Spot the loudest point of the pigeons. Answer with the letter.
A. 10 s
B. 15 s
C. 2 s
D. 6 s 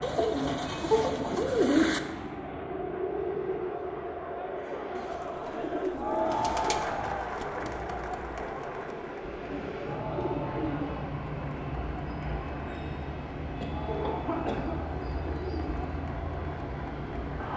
C.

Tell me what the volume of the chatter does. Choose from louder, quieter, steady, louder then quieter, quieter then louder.
louder then quieter.